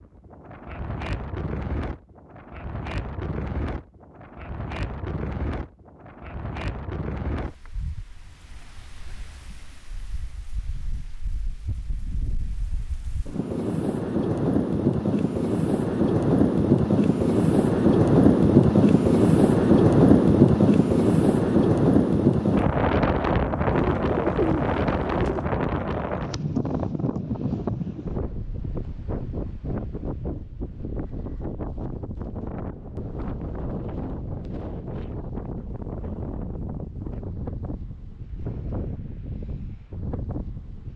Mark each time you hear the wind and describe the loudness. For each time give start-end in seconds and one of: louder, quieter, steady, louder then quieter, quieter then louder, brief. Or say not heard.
0.0-40.9 louder then quieter.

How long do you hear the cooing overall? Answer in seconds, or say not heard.
2 s.